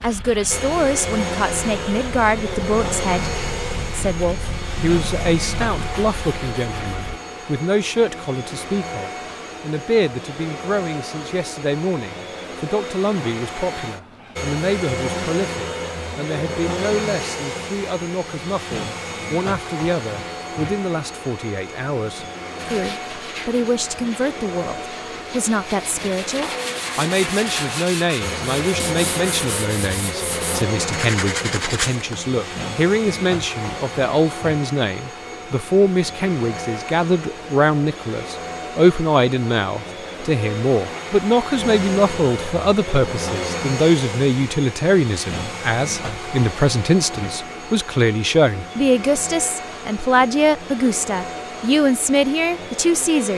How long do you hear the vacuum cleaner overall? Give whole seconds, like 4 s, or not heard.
53 s.